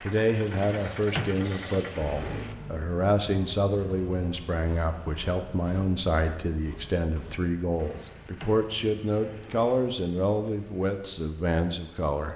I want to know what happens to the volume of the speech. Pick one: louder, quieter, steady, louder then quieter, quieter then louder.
steady.